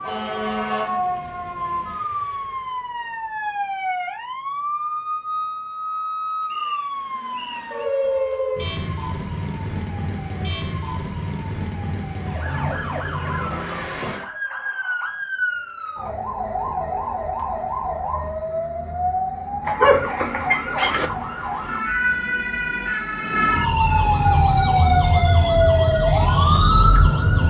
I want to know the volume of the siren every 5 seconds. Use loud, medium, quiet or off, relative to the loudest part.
medium, medium, medium, medium, loud, loud.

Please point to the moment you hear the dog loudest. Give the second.
20 s.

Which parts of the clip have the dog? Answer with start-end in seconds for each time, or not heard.
19.6-21.1.